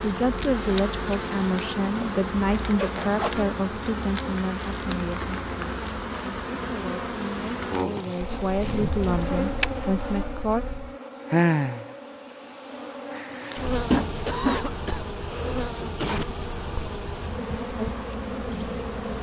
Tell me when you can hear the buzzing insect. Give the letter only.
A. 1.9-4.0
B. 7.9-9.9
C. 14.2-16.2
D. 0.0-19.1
D.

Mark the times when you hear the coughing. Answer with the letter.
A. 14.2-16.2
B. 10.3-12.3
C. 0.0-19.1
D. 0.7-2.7
A.